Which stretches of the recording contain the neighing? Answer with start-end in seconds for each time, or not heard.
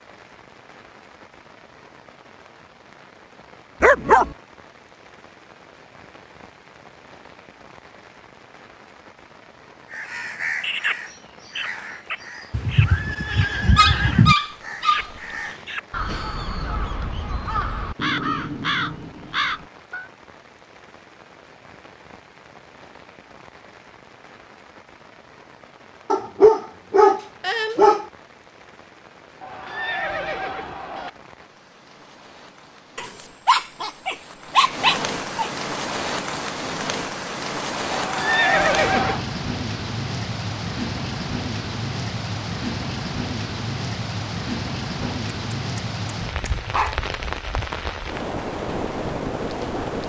12.5-14.3, 29.4-31.1, 37.9-39.2.